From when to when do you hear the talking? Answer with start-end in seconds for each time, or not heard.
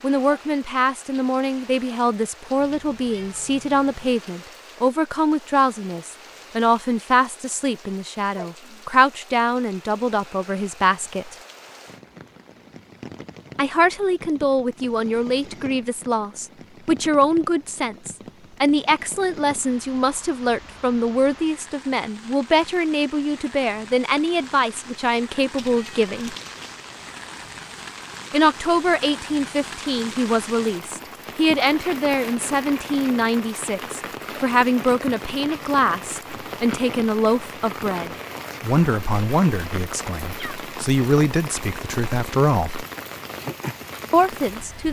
0.0-11.3, 13.6-26.4, 28.3-42.9, 44.1-44.8.